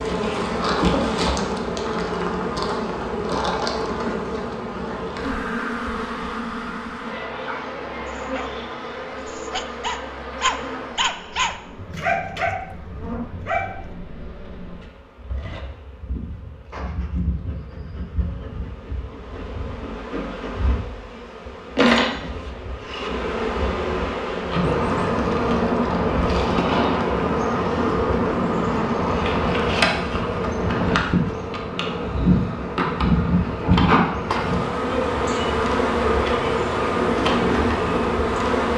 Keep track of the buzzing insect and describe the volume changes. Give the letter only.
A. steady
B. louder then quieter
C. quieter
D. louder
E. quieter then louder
E.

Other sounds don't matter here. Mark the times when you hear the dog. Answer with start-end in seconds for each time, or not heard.
7.4-13.9.